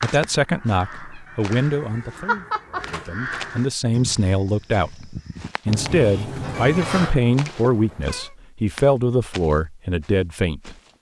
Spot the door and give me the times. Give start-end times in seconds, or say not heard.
2.9-3.5, 5.7-7.2.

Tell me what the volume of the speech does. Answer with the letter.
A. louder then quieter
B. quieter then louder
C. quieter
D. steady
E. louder
D.